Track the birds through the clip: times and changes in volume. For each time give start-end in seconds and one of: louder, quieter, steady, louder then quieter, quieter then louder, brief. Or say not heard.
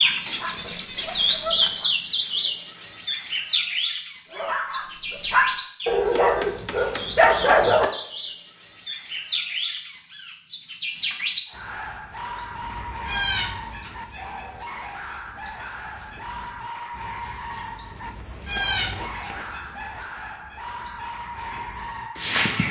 0.0-22.6 quieter then louder.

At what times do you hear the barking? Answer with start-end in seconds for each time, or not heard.
0.0-1.9, 4.3-7.9, 11.5-22.4.